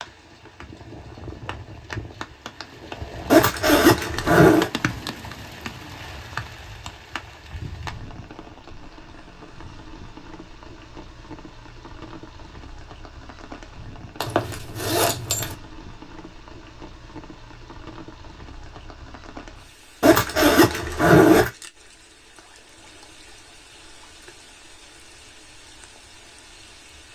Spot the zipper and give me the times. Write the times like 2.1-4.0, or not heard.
3.3-4.7, 14.2-15.6, 20.0-21.5.